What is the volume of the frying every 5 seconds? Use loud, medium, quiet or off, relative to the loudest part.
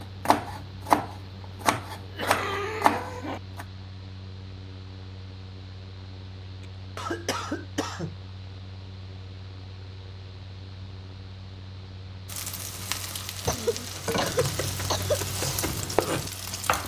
off, off, loud, loud.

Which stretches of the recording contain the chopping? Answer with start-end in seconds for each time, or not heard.
0.0-3.6, 13.9-16.8.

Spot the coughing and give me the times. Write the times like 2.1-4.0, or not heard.
2.1-3.4, 7.0-8.2, 13.4-15.2.